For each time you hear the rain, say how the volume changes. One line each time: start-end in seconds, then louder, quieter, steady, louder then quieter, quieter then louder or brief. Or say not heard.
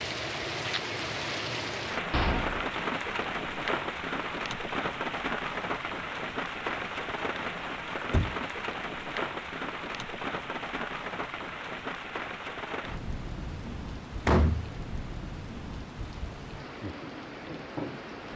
0.0-18.3 quieter.